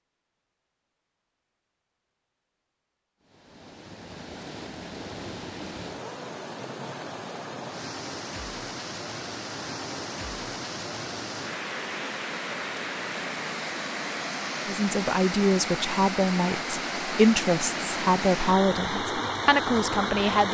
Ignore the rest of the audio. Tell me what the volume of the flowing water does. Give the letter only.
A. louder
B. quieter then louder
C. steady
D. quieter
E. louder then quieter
A.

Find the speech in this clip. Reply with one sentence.
You can hear the speech from 14.7 to 20.4 s.